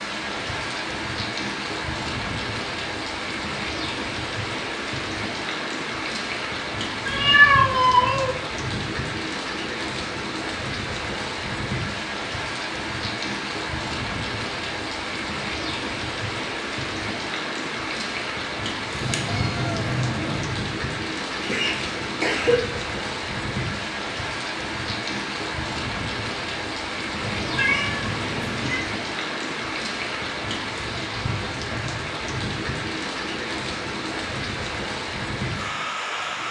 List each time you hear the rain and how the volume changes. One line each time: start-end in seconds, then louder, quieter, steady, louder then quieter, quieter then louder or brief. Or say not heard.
0.0-36.4 steady.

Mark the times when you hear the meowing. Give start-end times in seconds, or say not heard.
7.0-8.3, 18.9-20.4, 27.2-28.9.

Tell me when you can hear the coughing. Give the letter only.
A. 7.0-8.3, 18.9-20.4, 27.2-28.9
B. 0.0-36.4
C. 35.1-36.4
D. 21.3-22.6
D.